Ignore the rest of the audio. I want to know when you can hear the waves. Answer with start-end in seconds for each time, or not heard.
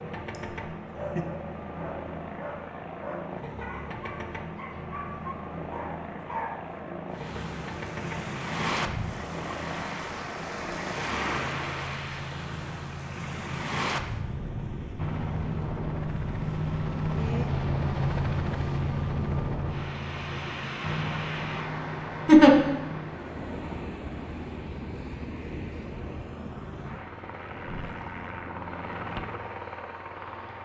7.1-30.6.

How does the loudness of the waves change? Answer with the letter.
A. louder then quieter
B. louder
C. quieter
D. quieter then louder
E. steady
C.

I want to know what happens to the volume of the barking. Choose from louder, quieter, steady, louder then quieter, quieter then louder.
steady.